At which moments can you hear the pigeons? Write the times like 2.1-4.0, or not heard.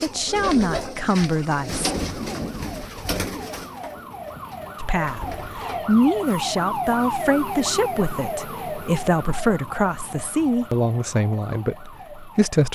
0.0-6.7.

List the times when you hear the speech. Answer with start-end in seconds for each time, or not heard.
0.0-1.9, 4.8-12.7.